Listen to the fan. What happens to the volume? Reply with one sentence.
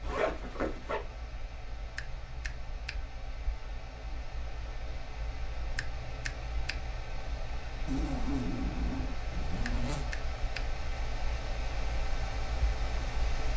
The loudness of the fan goes up.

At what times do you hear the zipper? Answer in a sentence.
The zipper can be heard from 0.0 to 1.0 s and from 7.8 to 10.1 s.